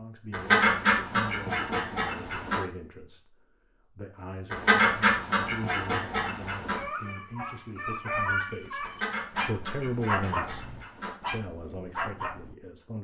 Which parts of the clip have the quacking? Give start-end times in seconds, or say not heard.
0.3-2.6, 4.5-6.8, 8.8-11.2.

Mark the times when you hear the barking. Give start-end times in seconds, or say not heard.
6.7-12.6.